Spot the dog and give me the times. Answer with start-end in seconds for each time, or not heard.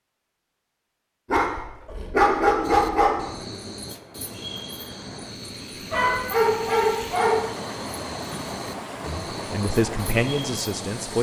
1.3-3.2, 5.9-7.5.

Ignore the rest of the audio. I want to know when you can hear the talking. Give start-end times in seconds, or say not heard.
9.1-11.1.